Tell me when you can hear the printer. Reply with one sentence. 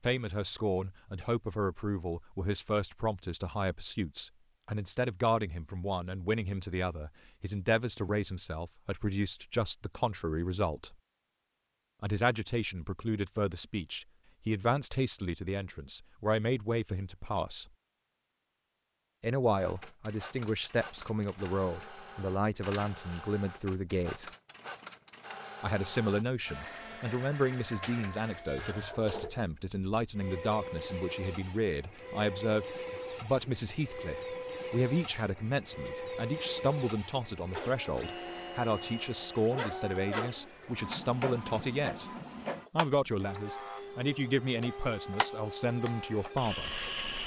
The printer can be heard from 19.6 to 47.2 s.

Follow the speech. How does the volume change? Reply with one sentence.
The loudness of the speech stays about the same.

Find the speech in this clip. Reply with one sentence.
You can hear the speech from 0.0 to 10.9 s, from 12.0 to 17.6 s, from 19.2 to 24.3 s, from 25.6 to 42.1 s and from 42.7 to 46.8 s.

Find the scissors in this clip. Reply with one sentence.
You can't hear the scissors here.